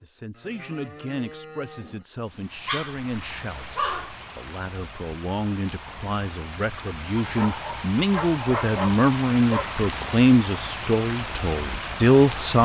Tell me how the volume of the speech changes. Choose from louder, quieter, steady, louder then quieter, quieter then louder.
louder.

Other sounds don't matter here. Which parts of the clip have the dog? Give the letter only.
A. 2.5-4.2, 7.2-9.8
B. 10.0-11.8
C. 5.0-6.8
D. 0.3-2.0
A.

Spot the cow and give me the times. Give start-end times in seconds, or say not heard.
0.3-2.0.